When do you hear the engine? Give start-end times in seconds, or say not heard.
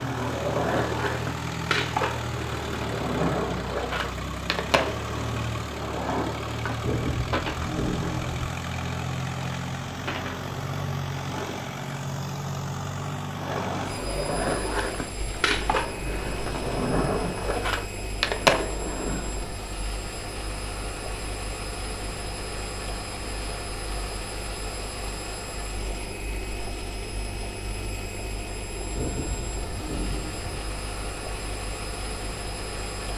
0.0-33.1.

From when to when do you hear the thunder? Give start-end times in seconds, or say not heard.
6.8-8.4, 28.9-30.6.